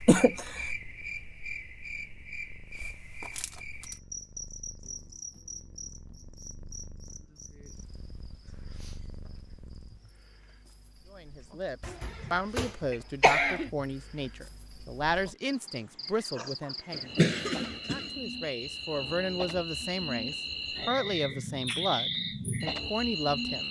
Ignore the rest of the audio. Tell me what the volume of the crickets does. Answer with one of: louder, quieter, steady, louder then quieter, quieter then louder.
quieter then louder.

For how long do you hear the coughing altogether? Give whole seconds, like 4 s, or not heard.
4 s.